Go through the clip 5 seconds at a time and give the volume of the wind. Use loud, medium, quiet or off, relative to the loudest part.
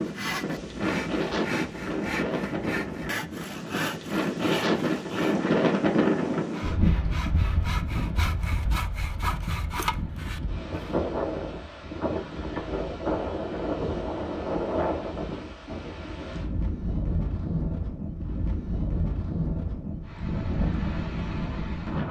loud, loud, loud, medium, loud.